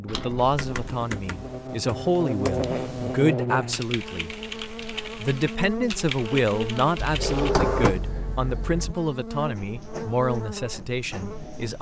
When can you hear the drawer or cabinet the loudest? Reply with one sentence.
The volume of the drawer or cabinet peaks at 8 seconds.